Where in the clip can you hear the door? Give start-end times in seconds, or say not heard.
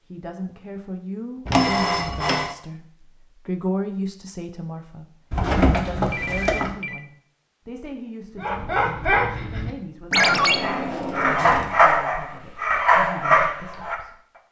1.4-2.4, 5.3-6.7, 10.1-11.8.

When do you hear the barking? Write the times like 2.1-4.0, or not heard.
8.4-13.9.